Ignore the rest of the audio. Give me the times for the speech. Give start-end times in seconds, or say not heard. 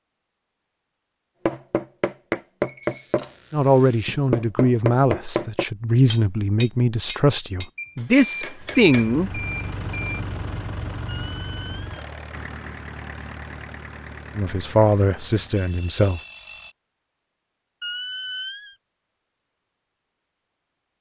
3.5-9.4, 14.3-16.2.